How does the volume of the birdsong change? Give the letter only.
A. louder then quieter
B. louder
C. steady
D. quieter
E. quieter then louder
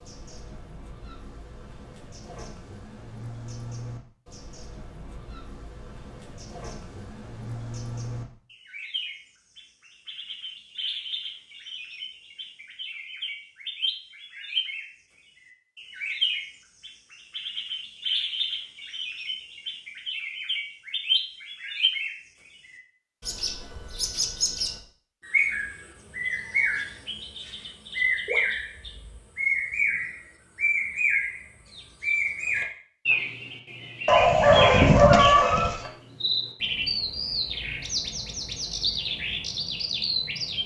B.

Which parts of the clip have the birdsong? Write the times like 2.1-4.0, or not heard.
0.0-40.6.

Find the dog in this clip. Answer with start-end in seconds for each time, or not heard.
34.0-35.9.